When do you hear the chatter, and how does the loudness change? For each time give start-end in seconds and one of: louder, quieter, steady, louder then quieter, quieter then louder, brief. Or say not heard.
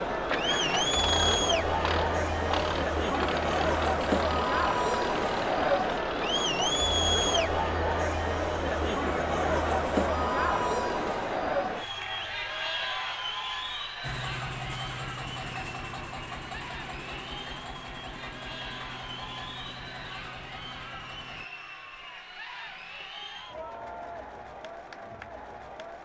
0.0-26.0 quieter.